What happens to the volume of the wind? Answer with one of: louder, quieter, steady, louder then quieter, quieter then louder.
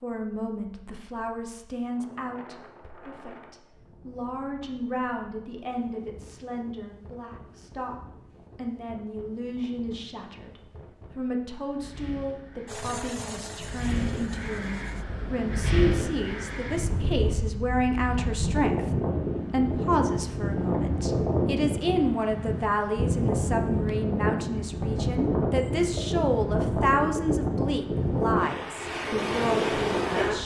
louder.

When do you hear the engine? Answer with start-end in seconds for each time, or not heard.
12.7-15.1.